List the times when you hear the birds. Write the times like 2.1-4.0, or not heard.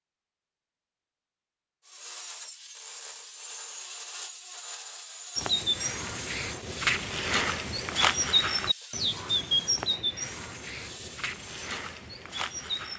5.3-12.9.